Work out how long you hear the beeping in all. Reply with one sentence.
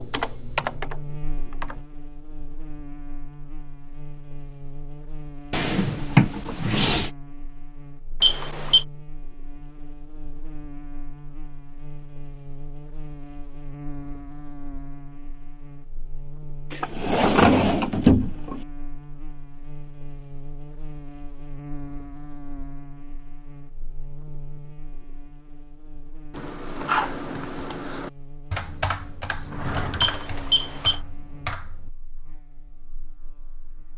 The beeping can be heard for 2 seconds in total.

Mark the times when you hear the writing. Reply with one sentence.
You can't hear the writing here.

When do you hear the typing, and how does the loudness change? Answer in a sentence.
The typing can be heard briefly from 0.0 to 1.9 s; and from 26.3 to 31.9 s, getting quieter.